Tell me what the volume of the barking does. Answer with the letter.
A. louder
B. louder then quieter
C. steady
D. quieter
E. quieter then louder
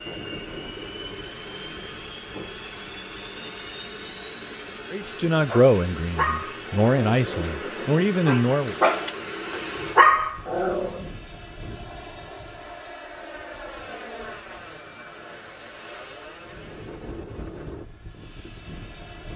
E.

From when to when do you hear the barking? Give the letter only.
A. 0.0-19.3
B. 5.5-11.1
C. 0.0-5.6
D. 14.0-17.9
B.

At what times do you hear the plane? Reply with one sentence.
You can hear the plane from 0.0 to 19.3 s.